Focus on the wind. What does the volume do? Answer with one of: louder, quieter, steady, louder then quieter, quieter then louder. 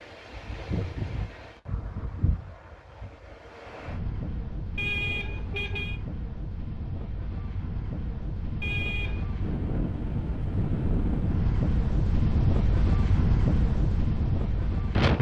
louder.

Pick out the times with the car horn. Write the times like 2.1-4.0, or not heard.
4.8-6.0, 8.6-9.3.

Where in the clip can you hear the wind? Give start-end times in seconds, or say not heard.
0.0-15.1.